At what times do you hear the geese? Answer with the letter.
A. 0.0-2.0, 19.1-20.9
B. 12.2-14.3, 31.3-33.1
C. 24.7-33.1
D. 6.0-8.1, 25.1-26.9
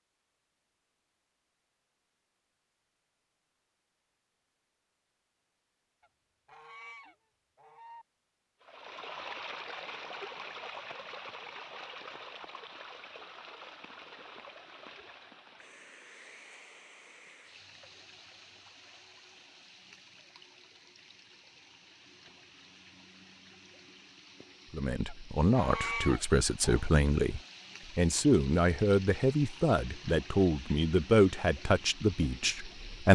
D.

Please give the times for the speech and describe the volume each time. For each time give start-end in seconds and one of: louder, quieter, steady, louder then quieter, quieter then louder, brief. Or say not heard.
24.7-33.1 steady.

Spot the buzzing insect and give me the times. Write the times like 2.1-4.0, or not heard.
not heard.